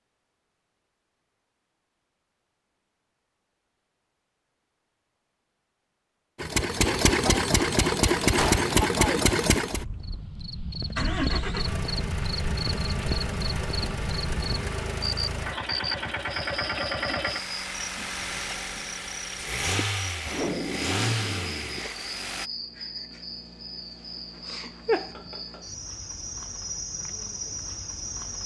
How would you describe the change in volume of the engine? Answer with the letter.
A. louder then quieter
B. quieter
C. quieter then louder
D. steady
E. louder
B.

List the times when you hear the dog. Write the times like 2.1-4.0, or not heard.
not heard.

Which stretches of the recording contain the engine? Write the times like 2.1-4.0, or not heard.
6.4-22.5.